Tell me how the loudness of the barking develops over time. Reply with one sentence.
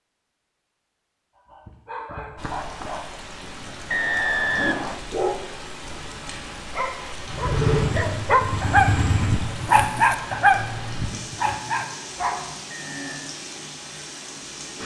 The volume of the barking goes up, then down.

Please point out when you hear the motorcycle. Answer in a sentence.
You can hear the motorcycle from 7.3 to 9.5 s.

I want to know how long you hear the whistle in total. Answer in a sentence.
The whistle can be heard for 2 seconds in total.